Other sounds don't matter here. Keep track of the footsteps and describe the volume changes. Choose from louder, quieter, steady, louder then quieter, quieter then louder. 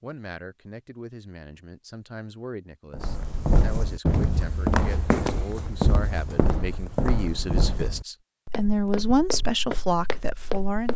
quieter.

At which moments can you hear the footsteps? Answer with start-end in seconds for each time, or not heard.
2.9-10.9.